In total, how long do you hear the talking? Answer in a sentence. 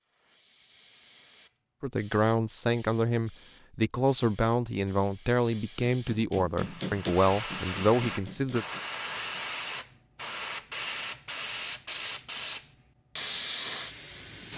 You can hear the talking for 7 seconds altogether.